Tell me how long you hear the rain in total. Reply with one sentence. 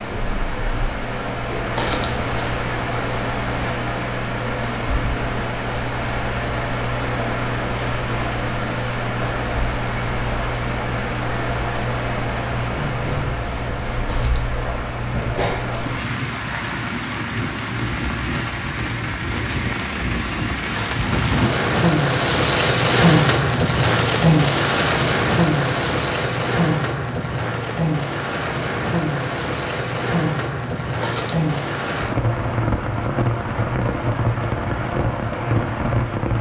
The rain can be heard for 36 seconds in total.